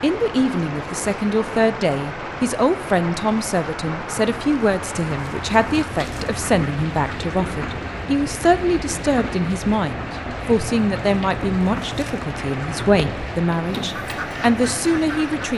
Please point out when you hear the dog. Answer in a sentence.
The dog can't be heard in this clip.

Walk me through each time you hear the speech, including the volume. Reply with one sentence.
The speech can be heard from 0.0 to 15.5 s, at a steady volume.